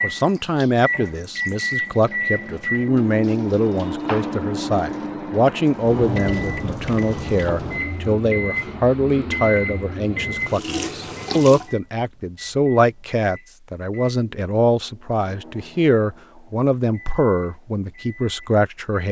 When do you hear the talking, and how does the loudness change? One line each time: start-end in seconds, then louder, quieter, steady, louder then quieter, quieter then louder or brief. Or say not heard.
0.0-19.0 steady.